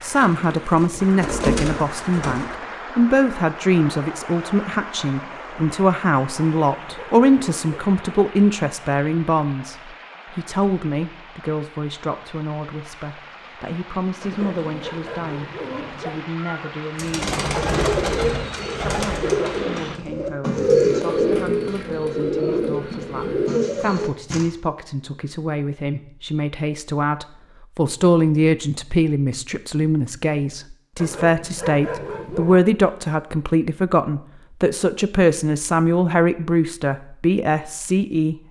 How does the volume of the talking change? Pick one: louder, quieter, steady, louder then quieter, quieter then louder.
quieter then louder.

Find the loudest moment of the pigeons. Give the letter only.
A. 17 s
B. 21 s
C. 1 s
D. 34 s
B.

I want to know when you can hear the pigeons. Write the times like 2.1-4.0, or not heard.
0.0-2.5, 14.2-24.4.